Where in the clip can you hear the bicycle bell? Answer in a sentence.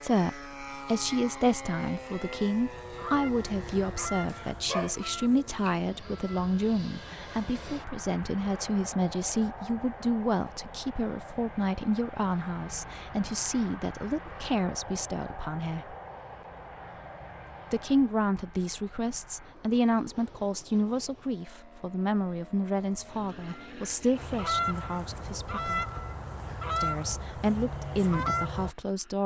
You can't hear the bicycle bell here.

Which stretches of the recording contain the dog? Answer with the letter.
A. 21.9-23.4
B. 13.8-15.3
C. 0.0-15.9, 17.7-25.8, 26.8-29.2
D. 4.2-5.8
D.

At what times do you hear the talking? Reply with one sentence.
You can hear the talking from 0.0 to 15.9 s, from 17.7 to 25.8 s and from 26.8 to 29.2 s.